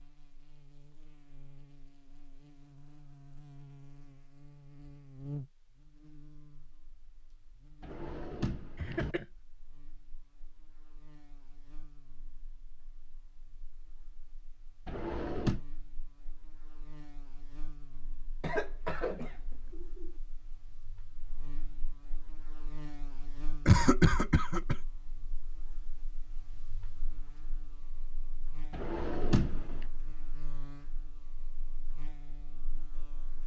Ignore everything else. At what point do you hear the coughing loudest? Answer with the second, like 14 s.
24 s.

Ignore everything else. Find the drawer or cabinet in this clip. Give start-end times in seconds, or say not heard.
7.8-9.2, 14.8-15.6, 28.7-29.9.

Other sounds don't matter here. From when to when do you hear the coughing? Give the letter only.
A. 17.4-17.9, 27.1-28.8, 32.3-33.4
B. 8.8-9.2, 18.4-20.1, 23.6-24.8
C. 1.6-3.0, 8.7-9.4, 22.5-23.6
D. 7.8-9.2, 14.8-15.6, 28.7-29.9
B.